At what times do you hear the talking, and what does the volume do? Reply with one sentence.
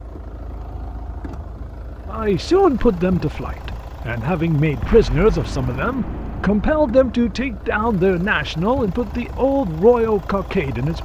You can hear the talking from 2.1 to 11.0 s, at a steady volume.